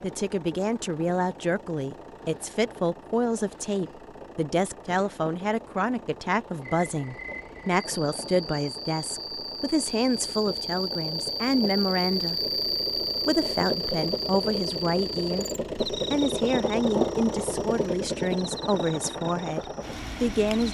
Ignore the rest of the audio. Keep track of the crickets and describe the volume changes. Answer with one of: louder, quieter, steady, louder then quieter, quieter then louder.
louder then quieter.